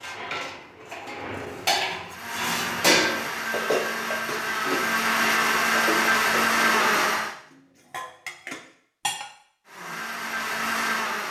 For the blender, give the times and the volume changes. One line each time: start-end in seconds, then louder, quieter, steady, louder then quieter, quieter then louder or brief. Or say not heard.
2.0-7.3 louder
9.7-11.2 brief.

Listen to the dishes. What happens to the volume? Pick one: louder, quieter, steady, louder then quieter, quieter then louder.
louder then quieter.